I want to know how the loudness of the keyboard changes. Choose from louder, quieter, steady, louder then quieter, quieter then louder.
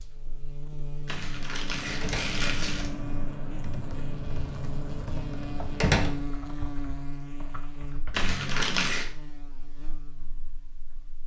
quieter.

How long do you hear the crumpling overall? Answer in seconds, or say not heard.
3 s.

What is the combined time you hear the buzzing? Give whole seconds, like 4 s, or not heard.
11 s.